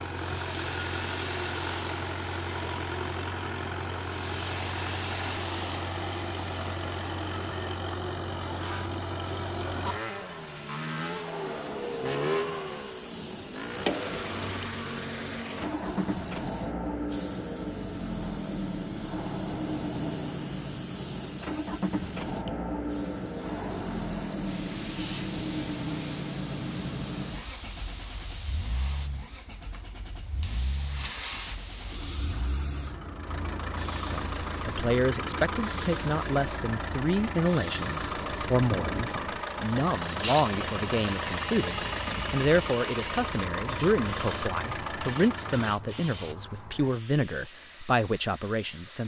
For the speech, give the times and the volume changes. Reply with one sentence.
The speech can be heard from 34.0 to 49.0 s, at a steady volume.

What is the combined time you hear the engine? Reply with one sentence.
You can hear the engine for 46 seconds altogether.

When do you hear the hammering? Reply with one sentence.
You can't hear the hammering here.